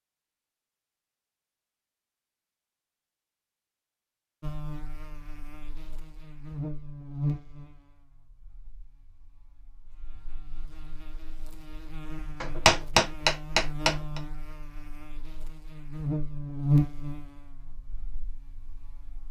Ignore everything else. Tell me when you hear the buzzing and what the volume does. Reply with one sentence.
The buzzing can be heard from 4.4 to 19.2 s, getting quieter then louder.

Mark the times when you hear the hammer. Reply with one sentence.
You can hear the hammer from 12.4 to 14.2 s.